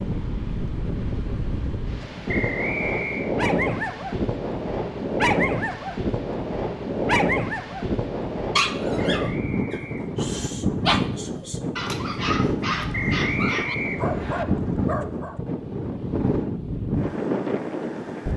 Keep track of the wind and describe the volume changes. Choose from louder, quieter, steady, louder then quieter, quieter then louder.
steady.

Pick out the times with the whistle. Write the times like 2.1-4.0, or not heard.
2.2-3.3, 9.2-10.5, 12.9-14.4.